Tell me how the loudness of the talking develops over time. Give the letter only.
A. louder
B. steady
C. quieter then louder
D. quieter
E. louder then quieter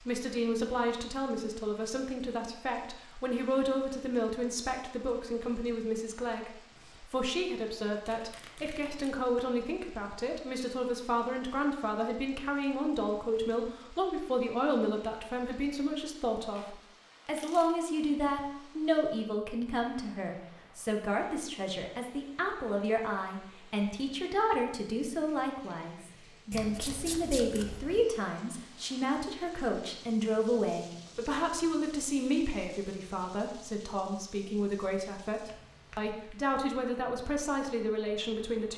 B.